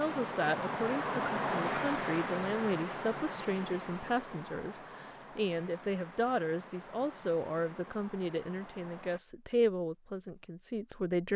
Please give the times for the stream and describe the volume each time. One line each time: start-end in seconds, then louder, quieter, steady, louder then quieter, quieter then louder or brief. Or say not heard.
0.0-9.2 quieter.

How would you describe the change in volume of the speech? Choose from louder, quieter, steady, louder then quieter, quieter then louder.
steady.